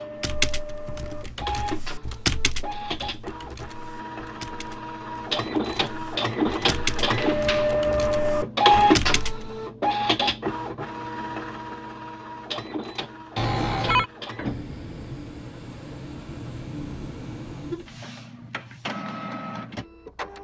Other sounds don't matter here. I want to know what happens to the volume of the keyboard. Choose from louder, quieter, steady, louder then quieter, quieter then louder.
quieter then louder.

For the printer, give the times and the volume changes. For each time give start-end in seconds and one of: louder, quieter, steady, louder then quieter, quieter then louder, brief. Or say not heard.
0.0-20.3 louder then quieter.